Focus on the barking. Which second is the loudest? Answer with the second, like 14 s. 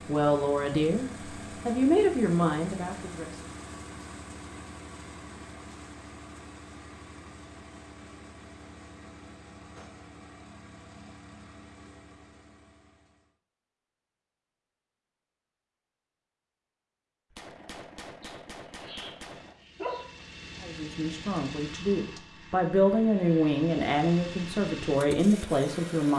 20 s.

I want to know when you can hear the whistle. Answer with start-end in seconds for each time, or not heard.
not heard.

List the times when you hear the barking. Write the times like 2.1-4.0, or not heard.
18.2-20.2.